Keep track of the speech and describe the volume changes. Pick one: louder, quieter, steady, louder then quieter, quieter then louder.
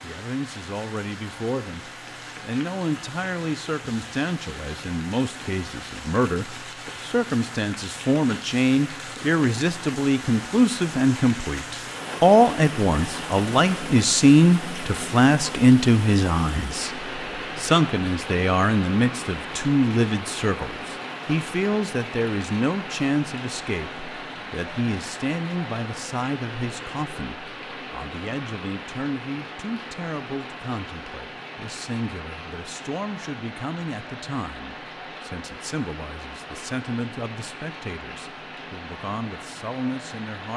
louder then quieter.